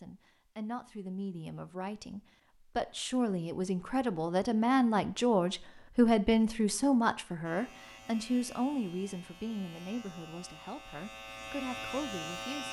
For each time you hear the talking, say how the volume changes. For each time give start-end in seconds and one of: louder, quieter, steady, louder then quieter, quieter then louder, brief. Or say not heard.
0.0-12.6 louder then quieter.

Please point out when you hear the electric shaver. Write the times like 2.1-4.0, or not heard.
7.4-12.6.